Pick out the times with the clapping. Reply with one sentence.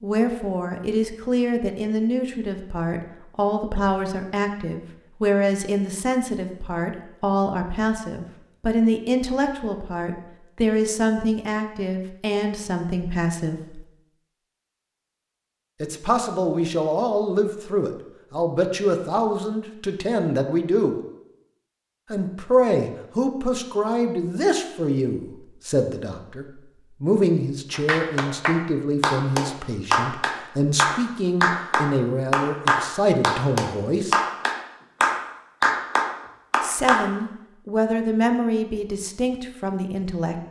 The clapping can be heard from 27.7 to 37.0 s.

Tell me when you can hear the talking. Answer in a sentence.
The talking can be heard from 0.0 to 13.8 s, from 15.8 to 20.9 s, from 22.1 to 34.1 s and from 36.6 to 40.4 s.